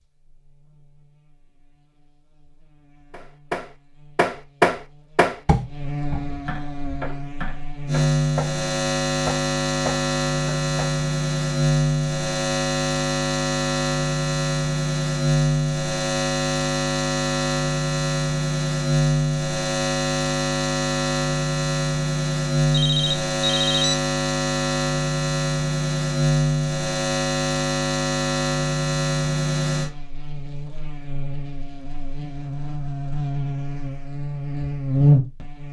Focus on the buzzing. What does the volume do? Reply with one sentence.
The volume of the buzzing goes up.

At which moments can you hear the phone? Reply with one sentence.
The phone can be heard from 22.7 to 23.9 s.